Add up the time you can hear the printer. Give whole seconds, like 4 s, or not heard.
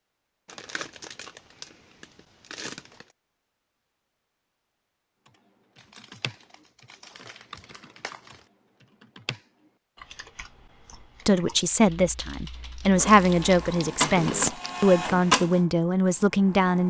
4 s.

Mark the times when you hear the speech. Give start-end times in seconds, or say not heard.
11.2-16.8.